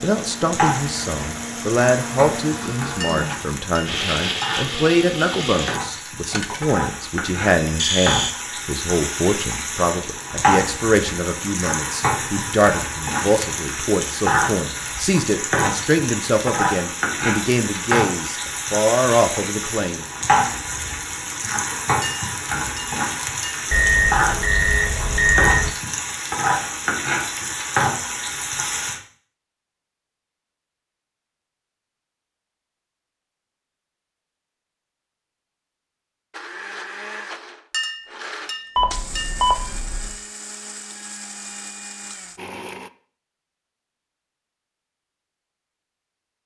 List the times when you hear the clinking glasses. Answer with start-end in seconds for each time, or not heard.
3.0-4.7, 22.0-23.6, 37.7-39.5.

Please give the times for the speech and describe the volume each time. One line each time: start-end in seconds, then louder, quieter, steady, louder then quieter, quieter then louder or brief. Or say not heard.
0.0-20.1 steady.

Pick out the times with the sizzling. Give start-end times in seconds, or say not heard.
0.0-29.0.